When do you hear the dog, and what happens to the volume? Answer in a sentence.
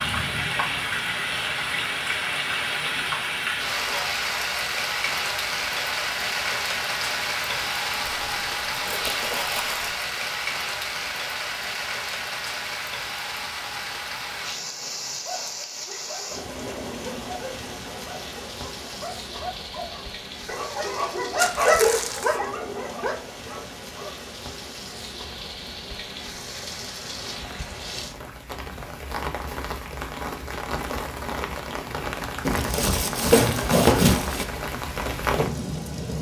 You can hear the dog from 15.2 to 24.2 s, getting louder then quieter.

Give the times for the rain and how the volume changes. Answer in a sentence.
The rain can be heard from 0.0 to 36.1 s, getting quieter then louder.